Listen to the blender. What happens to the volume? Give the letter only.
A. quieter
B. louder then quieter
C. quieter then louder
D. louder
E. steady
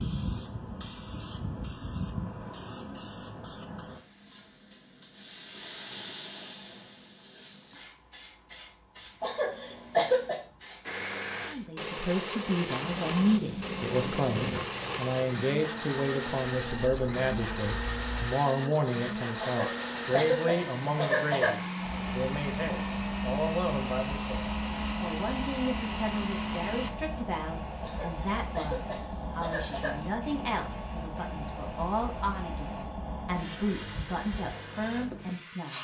E.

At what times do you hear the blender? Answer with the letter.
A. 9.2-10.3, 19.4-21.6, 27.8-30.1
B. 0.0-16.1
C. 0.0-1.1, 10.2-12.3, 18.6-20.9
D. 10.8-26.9
D.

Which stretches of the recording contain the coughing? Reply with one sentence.
The coughing can be heard from 9.2 to 10.3 s, from 19.4 to 21.6 s and from 27.8 to 30.1 s.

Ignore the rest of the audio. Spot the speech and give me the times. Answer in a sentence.
The speech can be heard from 11.4 to 35.8 s.